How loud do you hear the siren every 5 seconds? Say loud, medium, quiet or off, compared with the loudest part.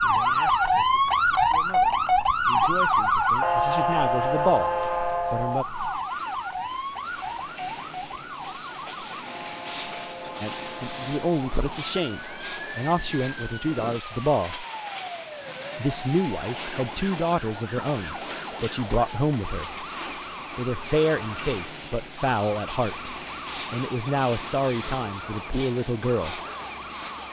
loud, medium, quiet, quiet, quiet, quiet.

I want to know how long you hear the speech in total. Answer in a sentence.
The speech can be heard for 20 seconds in total.